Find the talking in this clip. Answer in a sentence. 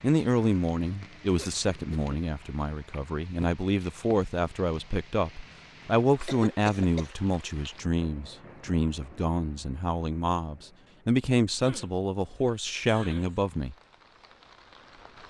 You can hear the talking from 0.0 to 13.8 s.